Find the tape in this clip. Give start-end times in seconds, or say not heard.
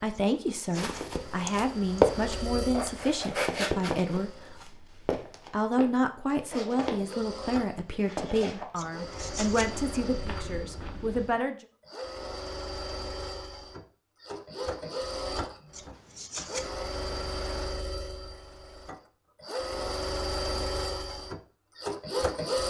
not heard.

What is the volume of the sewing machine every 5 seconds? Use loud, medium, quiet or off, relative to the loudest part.
medium, medium, medium, medium, loud.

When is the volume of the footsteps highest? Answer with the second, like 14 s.
2 s.